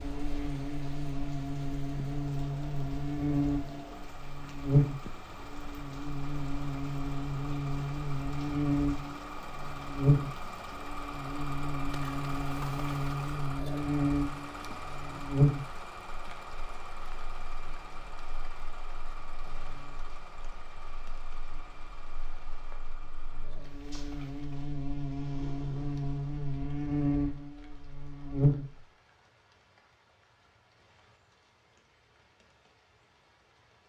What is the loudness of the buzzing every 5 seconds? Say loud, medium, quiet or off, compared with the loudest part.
loud, loud, loud, loud, quiet, loud, off.